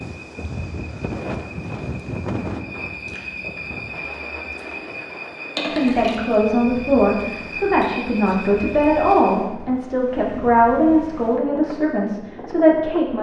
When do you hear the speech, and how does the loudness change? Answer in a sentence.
The speech can be heard from 5.7 to 13.1 s, at a steady volume.